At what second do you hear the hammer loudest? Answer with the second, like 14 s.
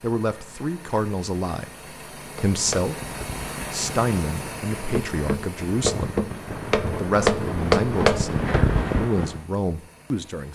8 s.